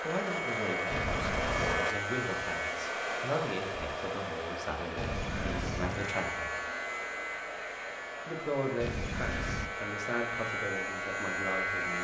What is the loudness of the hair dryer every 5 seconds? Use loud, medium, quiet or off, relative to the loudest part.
loud, medium, medium.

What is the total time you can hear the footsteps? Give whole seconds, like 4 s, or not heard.
not heard.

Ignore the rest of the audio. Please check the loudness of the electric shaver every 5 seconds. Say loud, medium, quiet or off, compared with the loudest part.
loud, medium, loud.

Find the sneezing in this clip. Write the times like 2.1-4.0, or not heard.
not heard.